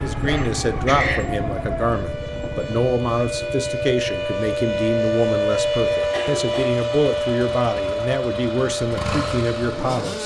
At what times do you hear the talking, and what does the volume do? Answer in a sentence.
The talking can be heard from 0.0 to 10.2 s, at a steady volume.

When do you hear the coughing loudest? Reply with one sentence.
The volume of the coughing peaks at 1 second.